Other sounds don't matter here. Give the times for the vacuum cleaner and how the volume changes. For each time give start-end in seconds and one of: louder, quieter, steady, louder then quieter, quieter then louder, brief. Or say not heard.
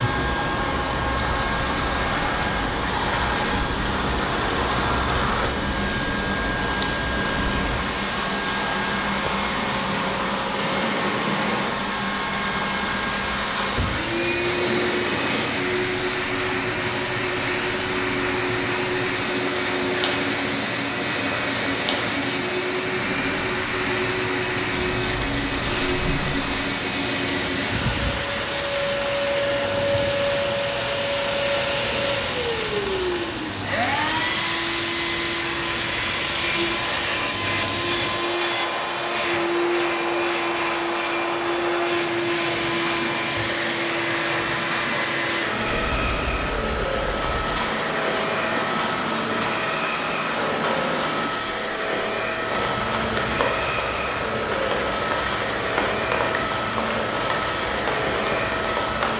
0.0-59.1 steady.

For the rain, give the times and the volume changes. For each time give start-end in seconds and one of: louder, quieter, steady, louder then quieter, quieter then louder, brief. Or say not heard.
0.0-59.1 steady.